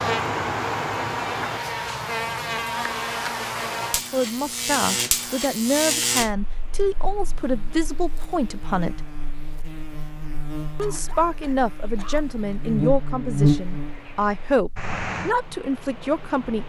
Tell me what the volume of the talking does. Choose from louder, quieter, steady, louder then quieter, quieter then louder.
steady.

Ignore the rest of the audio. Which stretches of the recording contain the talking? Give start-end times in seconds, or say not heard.
4.1-9.0, 10.8-16.6.